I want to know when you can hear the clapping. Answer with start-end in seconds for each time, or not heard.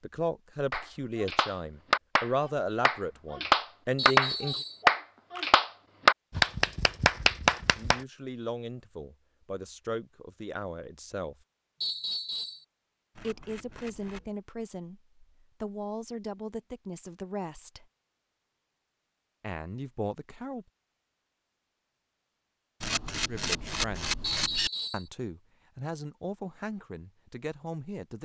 0.7-8.0.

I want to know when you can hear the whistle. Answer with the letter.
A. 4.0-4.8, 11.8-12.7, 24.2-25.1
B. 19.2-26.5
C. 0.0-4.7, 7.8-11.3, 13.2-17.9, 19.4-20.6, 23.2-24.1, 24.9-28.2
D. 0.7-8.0
A.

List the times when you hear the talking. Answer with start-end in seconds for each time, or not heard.
0.0-4.7, 7.8-11.3, 13.2-17.9, 19.4-20.6, 23.2-24.1, 24.9-28.2.